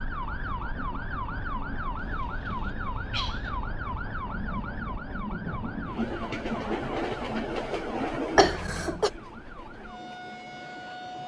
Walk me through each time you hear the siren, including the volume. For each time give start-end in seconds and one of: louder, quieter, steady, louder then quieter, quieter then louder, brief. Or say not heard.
0.0-11.2 quieter.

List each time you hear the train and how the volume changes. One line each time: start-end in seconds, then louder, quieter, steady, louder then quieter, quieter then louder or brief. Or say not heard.
0.0-11.2 louder then quieter.